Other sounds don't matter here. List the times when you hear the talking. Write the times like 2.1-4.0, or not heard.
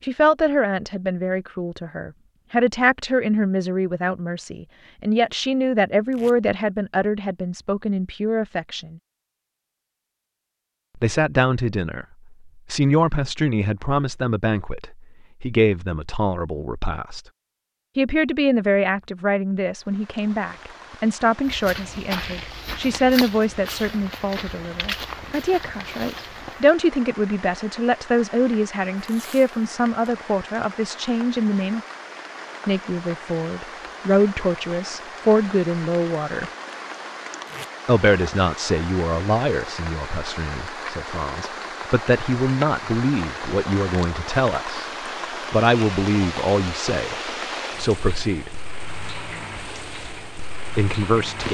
0.0-9.0, 10.9-17.2, 17.9-31.8, 32.6-36.5, 37.9-48.5, 50.8-51.4.